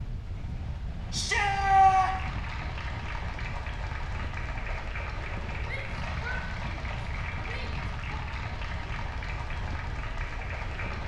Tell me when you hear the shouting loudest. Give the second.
2 s.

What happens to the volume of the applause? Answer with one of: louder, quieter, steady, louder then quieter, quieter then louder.
steady.